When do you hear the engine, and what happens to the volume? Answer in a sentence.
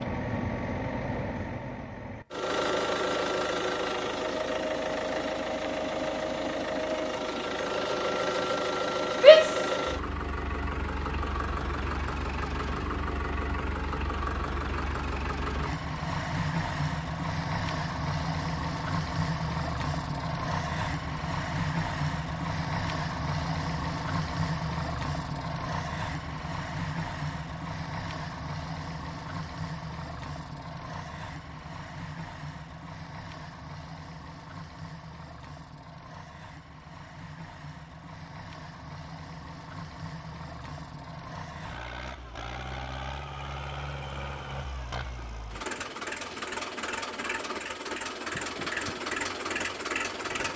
You can hear the engine from 0.0 to 50.5 s, getting quieter then louder.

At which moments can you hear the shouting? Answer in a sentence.
The shouting can be heard from 9.2 to 9.7 s.